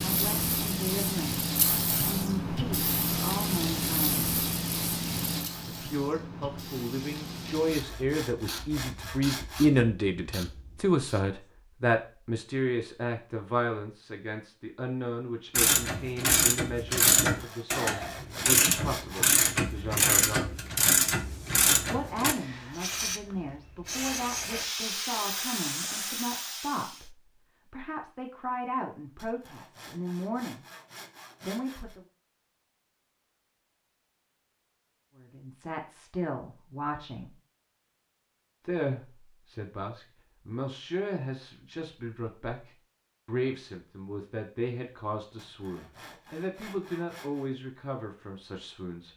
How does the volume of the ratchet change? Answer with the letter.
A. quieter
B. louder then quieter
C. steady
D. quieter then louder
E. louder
C.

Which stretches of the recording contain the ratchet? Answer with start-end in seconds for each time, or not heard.
15.6-22.4.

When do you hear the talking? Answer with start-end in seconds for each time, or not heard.
0.0-4.4, 5.7-20.6, 21.9-30.6, 31.4-32.0, 35.1-37.3, 38.6-49.1.